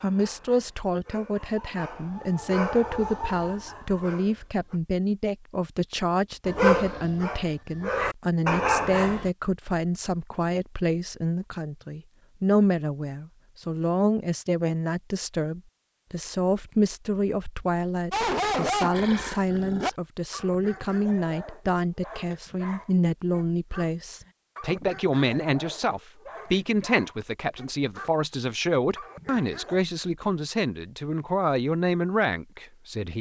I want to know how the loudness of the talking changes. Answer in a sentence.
The volume of the talking stays about the same.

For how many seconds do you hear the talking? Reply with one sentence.
The talking can be heard for 33 seconds in total.